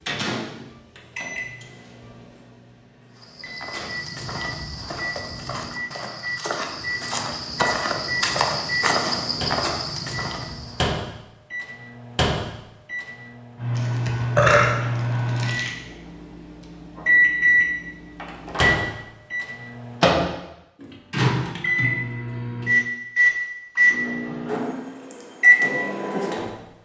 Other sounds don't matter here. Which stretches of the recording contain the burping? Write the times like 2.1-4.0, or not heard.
13.8-15.7.